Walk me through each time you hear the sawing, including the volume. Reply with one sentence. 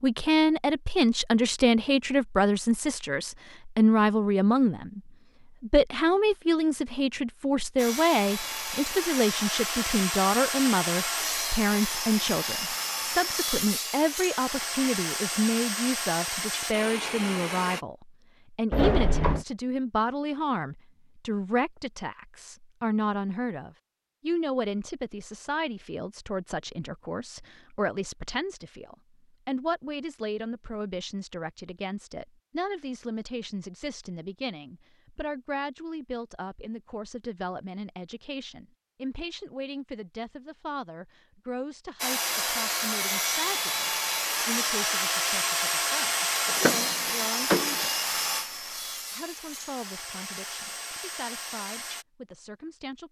The sawing can be heard from 7.8 to 17.9 s, at a steady volume; and from 42.0 to 52.0 s, getting quieter.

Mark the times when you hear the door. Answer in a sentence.
The door can be heard from 18.7 to 19.4 s and from 46.5 to 47.9 s.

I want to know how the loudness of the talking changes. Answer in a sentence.
The loudness of the talking goes down.